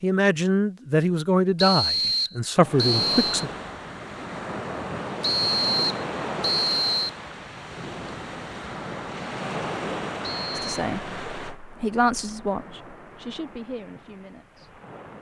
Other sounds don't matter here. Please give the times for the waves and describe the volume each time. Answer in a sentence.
The waves can be heard from 2.5 to 15.1 s, getting quieter.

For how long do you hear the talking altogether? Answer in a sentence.
The talking can be heard for 8 seconds in total.